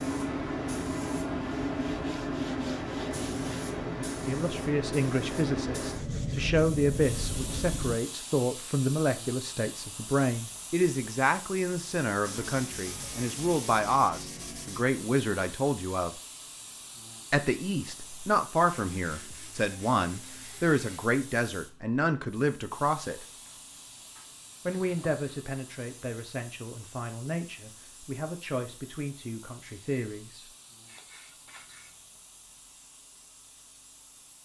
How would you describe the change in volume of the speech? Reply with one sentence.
The volume of the speech goes down.